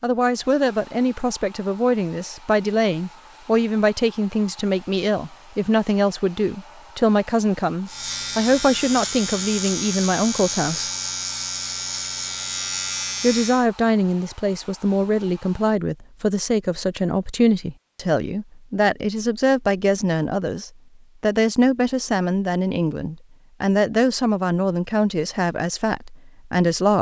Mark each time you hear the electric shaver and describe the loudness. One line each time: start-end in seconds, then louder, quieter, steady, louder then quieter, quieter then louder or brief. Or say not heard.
7.8-13.7 steady.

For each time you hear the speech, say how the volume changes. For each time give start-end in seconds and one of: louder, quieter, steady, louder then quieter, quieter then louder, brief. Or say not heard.
0.0-10.9 steady
13.2-26.9 steady.